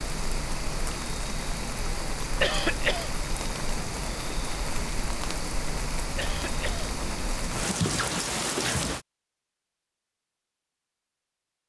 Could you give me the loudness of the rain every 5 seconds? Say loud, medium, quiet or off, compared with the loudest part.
loud, loud, off.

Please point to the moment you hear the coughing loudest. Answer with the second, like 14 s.
3 s.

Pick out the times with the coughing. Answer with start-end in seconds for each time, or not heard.
2.4-3.1, 6.2-6.9.